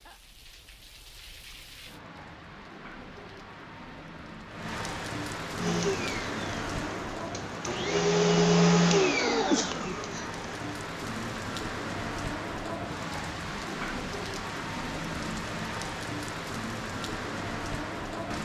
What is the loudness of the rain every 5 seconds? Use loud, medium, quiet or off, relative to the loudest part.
medium, loud, loud, loud.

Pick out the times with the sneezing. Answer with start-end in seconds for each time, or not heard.
9.3-10.0.